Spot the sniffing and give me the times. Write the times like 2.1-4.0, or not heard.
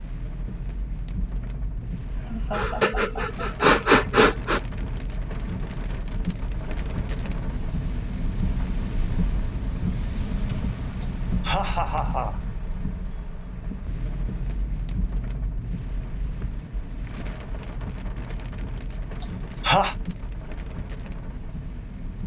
2.5-4.6.